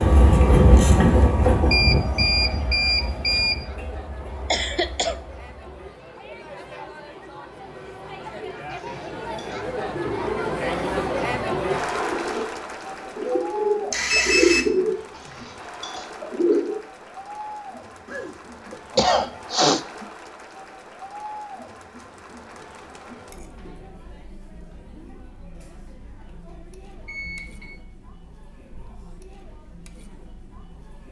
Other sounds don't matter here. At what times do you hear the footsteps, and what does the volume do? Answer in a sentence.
You can't hear the footsteps here.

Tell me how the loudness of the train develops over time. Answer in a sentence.
The loudness of the train goes down.